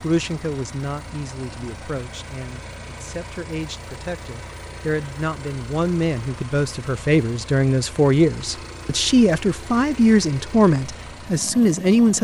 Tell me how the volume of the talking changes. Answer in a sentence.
The loudness of the talking goes up.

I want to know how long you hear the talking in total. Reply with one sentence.
The talking can be heard for 12 seconds in total.